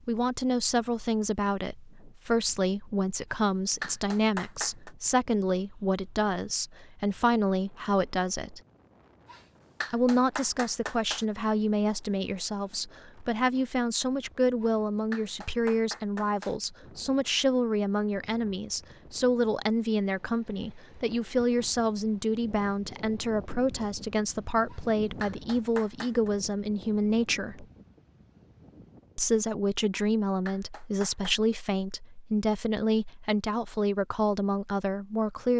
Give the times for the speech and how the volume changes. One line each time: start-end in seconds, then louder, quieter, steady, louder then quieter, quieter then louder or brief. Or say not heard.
0.1-8.6 steady
9.9-27.6 steady
29.1-35.5 steady.